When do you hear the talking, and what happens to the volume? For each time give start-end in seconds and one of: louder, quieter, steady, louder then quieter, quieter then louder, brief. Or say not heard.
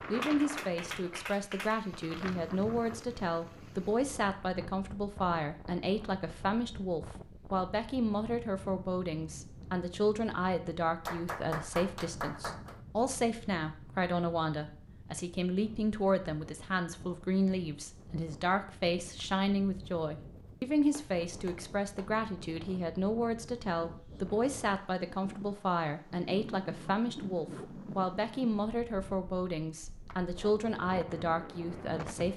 0.1-32.3 steady.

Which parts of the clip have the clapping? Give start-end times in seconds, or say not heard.
0.2-1.8, 11.1-12.8, 20.9-22.1.